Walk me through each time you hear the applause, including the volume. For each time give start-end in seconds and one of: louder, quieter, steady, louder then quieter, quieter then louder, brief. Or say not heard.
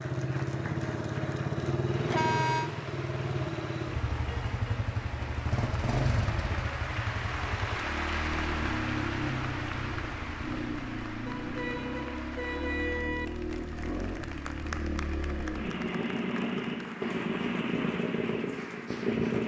0.0-19.4 louder then quieter.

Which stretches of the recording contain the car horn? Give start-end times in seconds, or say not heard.
2.0-2.7, 11.2-13.2.